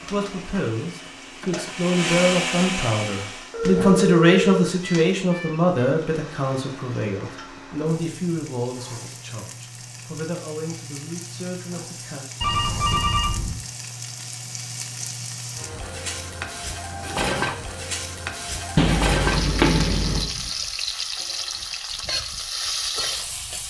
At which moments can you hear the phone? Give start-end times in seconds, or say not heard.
3.5-5.8, 12.4-13.6, 18.8-20.2.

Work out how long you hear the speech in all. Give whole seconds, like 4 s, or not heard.
12 s.